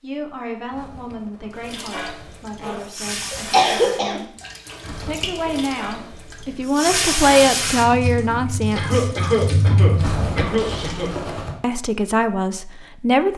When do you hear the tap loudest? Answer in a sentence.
The loudest moment of the tap is at 7 seconds.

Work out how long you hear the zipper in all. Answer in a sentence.
The zipper can be heard for 5 seconds in total.